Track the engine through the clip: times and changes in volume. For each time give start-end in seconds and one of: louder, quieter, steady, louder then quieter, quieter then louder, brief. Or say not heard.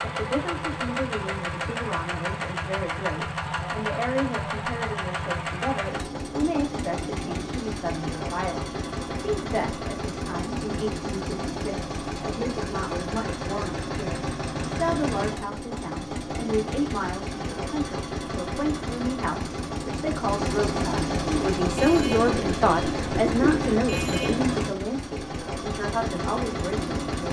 0.0-27.2 steady.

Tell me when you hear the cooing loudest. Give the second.
23 s.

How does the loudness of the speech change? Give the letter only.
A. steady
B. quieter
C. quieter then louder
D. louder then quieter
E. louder
E.